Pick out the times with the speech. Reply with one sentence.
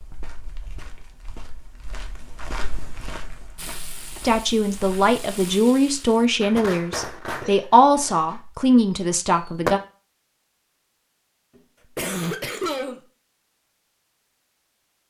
You can hear the speech from 4.2 to 9.8 s.